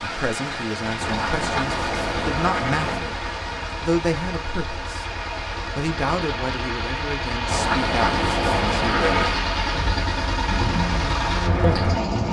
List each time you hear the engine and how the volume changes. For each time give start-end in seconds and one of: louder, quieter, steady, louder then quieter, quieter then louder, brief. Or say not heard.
0.0-12.2 louder.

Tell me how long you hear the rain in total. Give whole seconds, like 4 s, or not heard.
12 s.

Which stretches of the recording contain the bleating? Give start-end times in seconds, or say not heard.
1.0-3.0, 7.5-9.4.